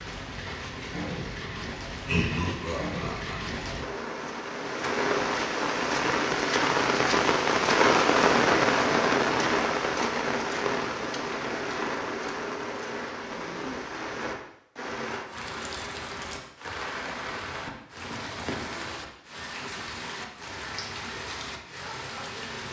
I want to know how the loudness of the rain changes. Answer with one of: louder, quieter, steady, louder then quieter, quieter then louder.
louder then quieter.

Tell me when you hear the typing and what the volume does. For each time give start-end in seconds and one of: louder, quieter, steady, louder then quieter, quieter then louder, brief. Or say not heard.
not heard.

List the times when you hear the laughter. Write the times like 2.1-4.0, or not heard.
2.0-3.4.